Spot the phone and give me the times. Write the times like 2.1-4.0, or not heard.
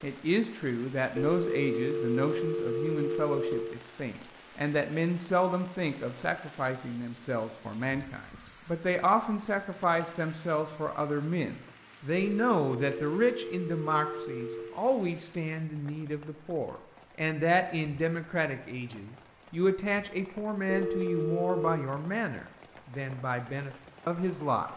1.1-3.8, 12.2-14.8, 20.6-21.9.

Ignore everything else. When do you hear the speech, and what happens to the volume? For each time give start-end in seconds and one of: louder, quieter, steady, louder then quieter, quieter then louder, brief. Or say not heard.
0.0-24.7 steady.